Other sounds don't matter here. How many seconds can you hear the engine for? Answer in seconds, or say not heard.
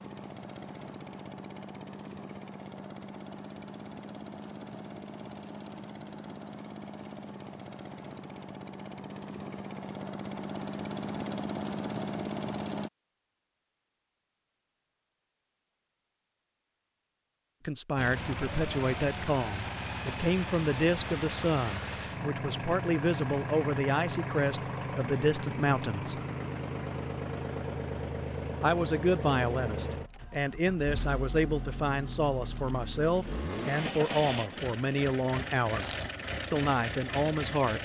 33 s.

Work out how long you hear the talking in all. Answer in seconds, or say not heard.
17 s.